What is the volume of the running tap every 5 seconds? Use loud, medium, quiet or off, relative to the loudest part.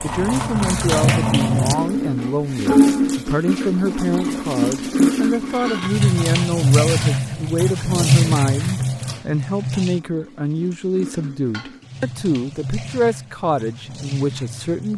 loud, loud, quiet.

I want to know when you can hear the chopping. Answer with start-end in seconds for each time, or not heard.
not heard.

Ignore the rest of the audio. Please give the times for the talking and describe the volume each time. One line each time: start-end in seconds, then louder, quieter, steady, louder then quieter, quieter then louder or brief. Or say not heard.
0.0-14.9 steady.